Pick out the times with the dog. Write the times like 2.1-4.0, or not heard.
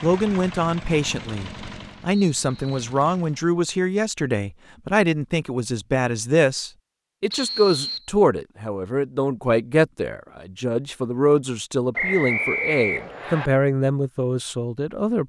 not heard.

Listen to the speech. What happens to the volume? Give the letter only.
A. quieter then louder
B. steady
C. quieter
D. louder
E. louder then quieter
B.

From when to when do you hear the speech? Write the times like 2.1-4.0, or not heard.
0.0-15.2.